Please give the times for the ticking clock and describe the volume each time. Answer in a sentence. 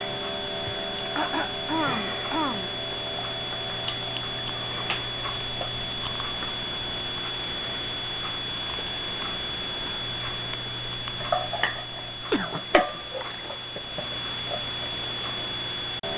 You can hear the ticking clock from 0.0 to 16.1 s, at a steady volume.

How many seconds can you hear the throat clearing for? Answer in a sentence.
The throat clearing can be heard for 3 seconds in total.